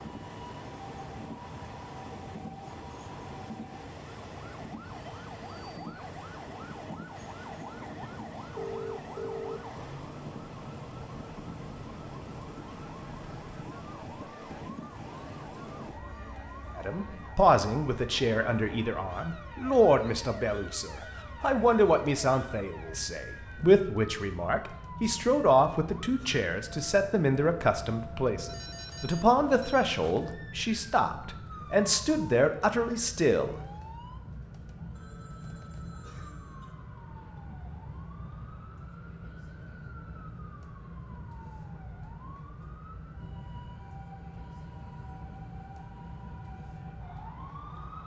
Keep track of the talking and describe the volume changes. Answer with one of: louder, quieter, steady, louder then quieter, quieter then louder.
steady.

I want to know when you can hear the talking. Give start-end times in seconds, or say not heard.
16.8-33.5.